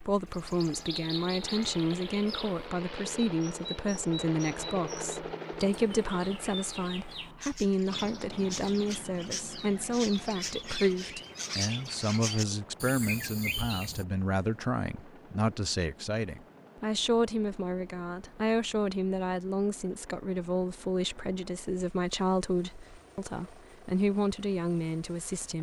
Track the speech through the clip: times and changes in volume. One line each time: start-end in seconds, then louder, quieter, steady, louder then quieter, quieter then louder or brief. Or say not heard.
0.1-25.5 steady.